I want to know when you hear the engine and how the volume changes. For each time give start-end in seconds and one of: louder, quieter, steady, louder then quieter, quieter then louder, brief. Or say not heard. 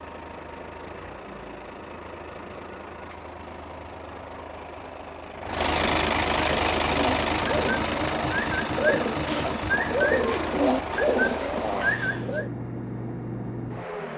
0.0-14.1 louder then quieter.